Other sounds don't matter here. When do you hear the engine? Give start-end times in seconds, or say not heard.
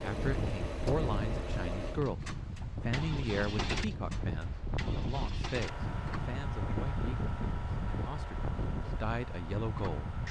0.0-10.2.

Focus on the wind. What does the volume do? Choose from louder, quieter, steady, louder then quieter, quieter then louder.
steady.